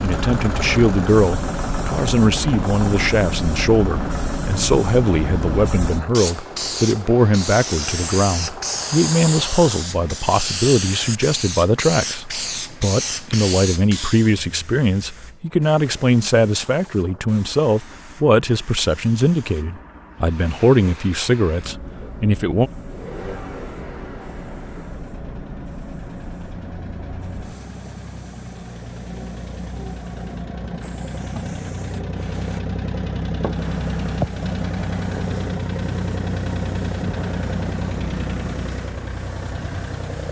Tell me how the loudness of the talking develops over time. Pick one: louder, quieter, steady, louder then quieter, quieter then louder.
steady.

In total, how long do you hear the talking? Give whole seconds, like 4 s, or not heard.
23 s.